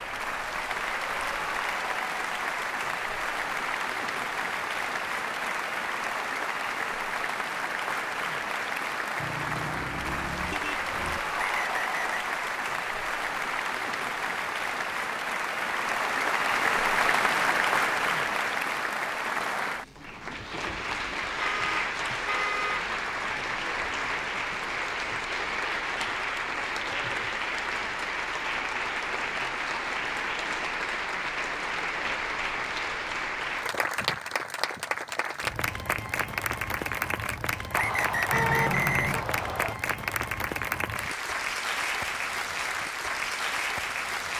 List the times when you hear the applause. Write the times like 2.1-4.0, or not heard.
0.0-44.3.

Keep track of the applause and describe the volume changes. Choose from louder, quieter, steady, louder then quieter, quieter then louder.
steady.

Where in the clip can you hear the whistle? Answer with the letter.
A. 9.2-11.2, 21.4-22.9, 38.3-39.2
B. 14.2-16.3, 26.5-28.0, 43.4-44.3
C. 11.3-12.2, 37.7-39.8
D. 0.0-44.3
C.